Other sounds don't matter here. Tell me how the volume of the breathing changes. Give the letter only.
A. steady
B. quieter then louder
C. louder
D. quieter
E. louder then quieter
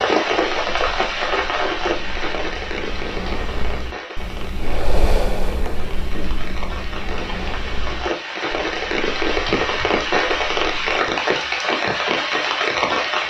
E.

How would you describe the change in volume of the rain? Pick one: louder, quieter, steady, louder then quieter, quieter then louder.
quieter then louder.